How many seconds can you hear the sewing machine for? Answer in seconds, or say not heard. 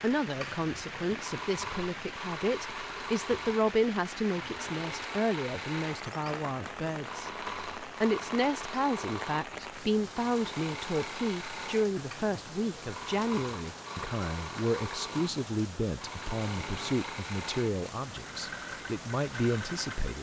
20 s.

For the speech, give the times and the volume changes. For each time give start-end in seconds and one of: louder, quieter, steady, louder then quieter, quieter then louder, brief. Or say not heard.
0.0-20.1 steady.